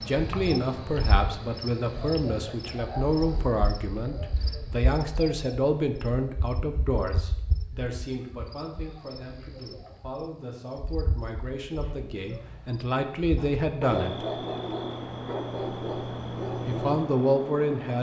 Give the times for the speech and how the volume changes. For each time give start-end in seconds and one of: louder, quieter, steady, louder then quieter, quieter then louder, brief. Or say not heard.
0.0-14.2 quieter then louder
16.6-17.9 brief.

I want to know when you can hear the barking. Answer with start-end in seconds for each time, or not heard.
11.8-17.0.